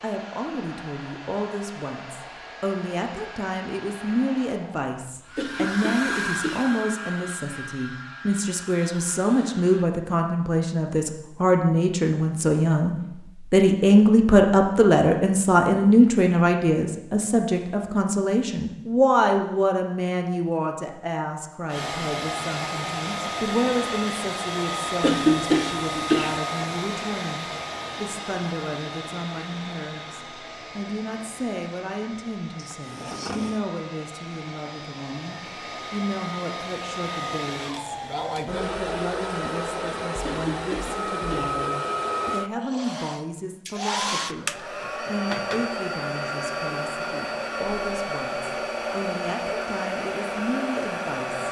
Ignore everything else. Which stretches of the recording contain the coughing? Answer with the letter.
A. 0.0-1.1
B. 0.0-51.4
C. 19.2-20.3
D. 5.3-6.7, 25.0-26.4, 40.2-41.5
D.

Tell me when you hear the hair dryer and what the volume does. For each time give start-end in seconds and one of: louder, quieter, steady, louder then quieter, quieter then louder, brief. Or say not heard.
0.0-9.9 louder then quieter
21.6-51.4 quieter then louder.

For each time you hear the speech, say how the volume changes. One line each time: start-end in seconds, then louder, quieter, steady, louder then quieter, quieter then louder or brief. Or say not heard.
0.0-51.4 louder then quieter.